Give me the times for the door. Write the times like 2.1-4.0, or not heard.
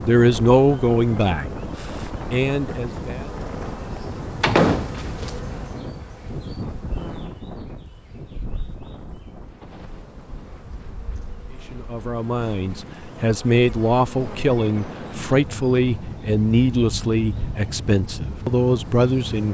4.4-5.3.